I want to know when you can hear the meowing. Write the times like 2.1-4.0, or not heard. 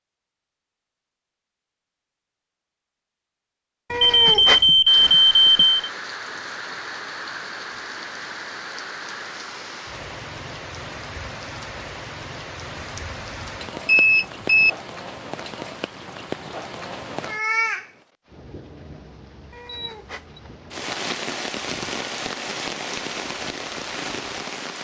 3.9-5.2, 19.5-20.2.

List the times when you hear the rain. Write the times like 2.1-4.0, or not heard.
4.8-24.8.